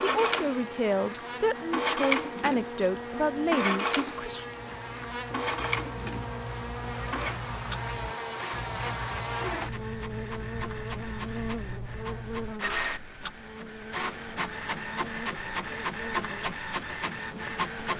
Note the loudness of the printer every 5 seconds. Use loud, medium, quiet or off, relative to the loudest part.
loud, medium, medium, loud.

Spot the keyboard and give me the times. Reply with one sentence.
The keyboard can't be heard in this clip.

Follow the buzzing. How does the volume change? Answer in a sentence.
The volume of the buzzing goes up, then down.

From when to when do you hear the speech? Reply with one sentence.
You can hear the speech from 0.0 to 4.5 s.